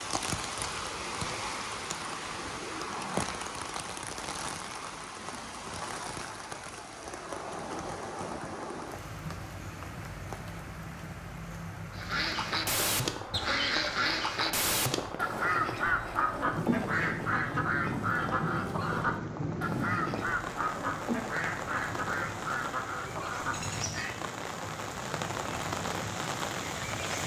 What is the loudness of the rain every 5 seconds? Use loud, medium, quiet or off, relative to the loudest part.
loud, medium, medium, loud, loud, loud.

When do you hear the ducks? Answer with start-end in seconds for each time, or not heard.
11.9-24.1.